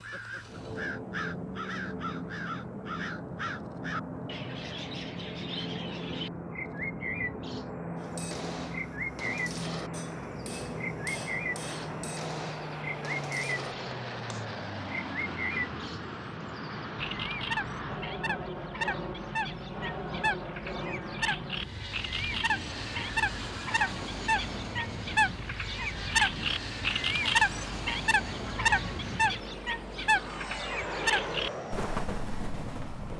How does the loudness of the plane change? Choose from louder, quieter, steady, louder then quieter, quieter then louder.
steady.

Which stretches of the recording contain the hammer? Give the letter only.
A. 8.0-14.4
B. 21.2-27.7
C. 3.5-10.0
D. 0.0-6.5
A.